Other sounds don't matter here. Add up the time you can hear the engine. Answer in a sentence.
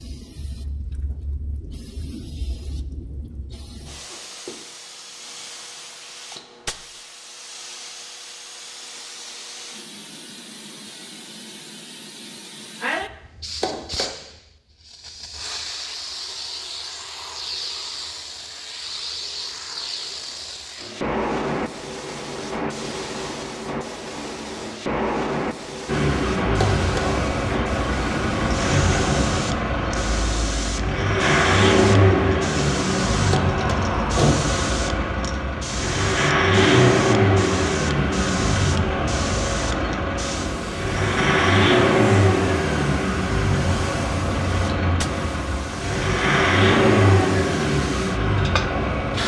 You can hear the engine for 23 seconds altogether.